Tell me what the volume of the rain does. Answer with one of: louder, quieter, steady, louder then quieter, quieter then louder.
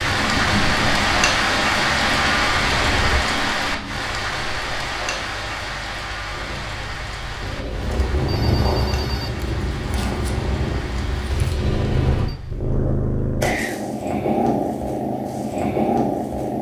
quieter.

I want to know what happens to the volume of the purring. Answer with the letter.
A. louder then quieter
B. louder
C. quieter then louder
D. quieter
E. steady
C.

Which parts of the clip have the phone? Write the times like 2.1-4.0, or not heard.
2.5-3.2, 7.3-9.3, 11.3-12.3.